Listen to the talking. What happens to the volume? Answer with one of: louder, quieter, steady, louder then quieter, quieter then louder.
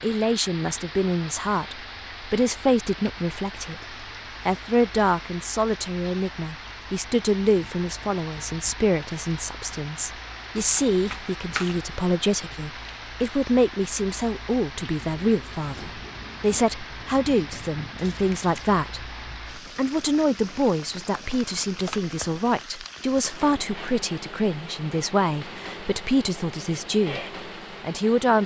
steady.